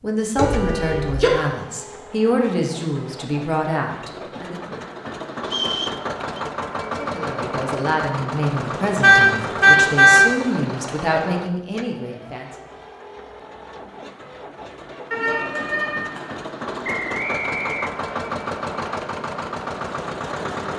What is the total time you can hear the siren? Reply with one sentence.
You can't hear the siren here.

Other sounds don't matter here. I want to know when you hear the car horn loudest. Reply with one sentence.
The loudest moment of the car horn is at 10 seconds.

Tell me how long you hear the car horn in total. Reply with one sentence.
You can hear the car horn for 3 seconds altogether.